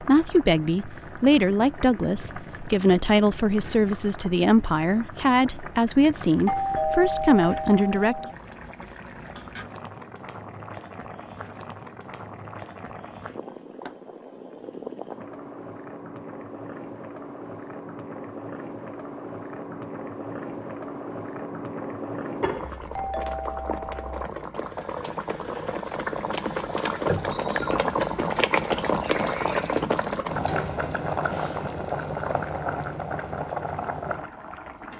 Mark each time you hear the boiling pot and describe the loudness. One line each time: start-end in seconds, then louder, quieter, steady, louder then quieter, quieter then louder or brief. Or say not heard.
0.0-34.9 louder.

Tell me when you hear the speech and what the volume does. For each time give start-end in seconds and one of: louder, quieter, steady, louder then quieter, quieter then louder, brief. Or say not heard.
0.0-8.2 steady.